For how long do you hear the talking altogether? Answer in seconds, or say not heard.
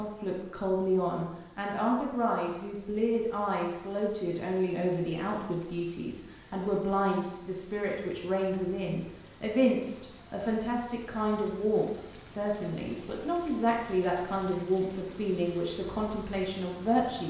17 s.